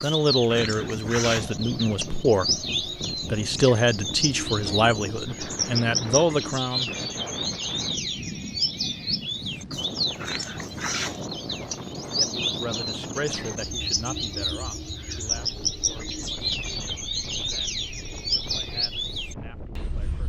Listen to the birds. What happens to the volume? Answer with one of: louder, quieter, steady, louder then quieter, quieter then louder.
steady.